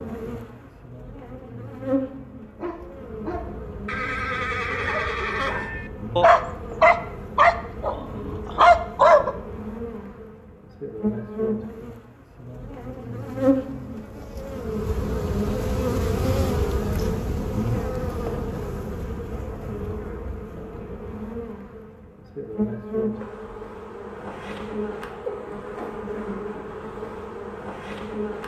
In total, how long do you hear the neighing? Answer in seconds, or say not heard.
2 s.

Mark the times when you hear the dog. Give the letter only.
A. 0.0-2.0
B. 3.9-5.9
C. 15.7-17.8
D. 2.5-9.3
D.